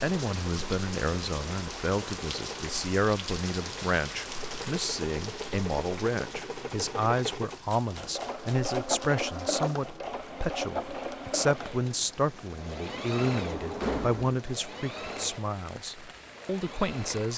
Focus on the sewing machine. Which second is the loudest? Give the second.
9 s.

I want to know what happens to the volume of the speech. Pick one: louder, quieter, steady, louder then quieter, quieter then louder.
steady.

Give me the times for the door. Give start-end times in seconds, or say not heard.
13.3-14.3.